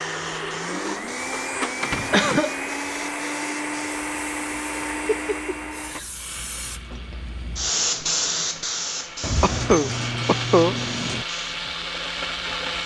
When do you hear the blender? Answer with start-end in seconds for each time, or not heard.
0.0-12.8.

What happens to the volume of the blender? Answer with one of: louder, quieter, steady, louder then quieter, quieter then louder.
quieter then louder.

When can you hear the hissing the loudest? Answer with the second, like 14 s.
8 s.